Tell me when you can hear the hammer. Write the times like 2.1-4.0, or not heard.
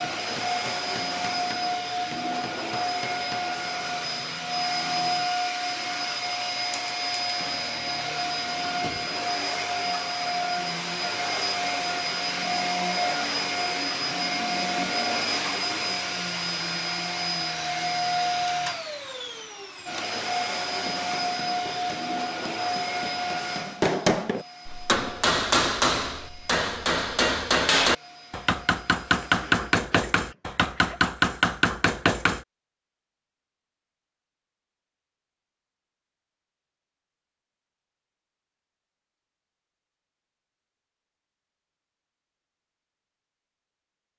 0.1-3.5, 20.7-32.5.